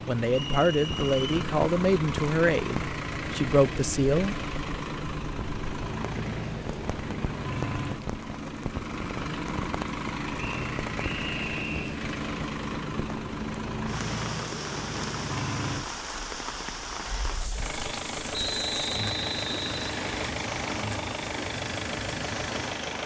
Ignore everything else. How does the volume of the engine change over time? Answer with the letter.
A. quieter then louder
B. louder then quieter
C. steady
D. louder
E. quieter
C.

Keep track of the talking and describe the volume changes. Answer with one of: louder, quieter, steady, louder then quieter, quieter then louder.
quieter then louder.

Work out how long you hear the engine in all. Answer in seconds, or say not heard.
23 s.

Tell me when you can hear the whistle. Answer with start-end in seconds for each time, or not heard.
0.2-1.4, 10.3-11.9, 18.3-20.3.